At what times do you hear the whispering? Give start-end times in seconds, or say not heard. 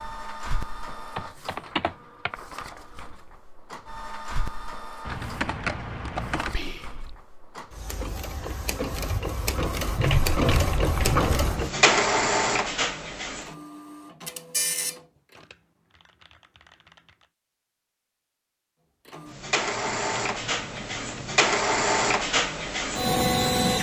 6.5-7.2.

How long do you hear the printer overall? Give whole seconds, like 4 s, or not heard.
20 s.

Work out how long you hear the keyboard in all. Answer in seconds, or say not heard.
8 s.